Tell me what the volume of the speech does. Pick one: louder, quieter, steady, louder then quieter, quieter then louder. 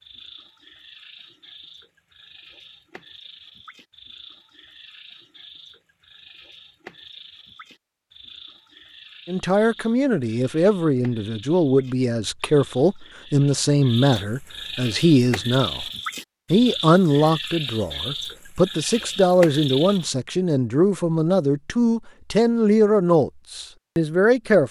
steady.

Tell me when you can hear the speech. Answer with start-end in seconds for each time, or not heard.
9.2-15.8, 16.5-24.6.